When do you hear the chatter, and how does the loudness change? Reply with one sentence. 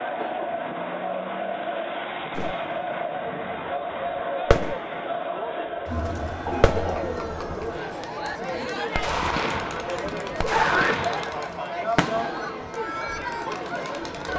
The chatter can be heard from 0.0 to 14.3 s, at a steady volume.